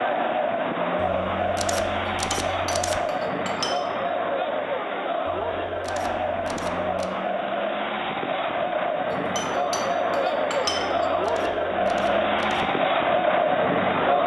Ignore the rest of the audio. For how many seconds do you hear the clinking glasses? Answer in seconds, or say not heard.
4 s.